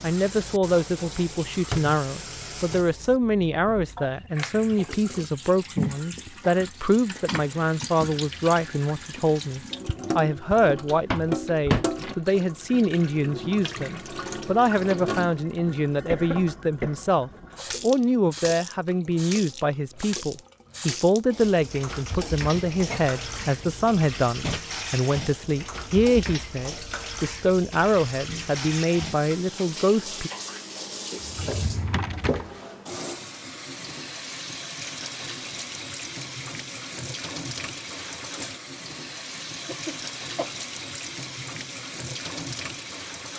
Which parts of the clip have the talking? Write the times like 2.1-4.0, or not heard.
0.0-30.3.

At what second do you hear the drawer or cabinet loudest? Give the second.
12 s.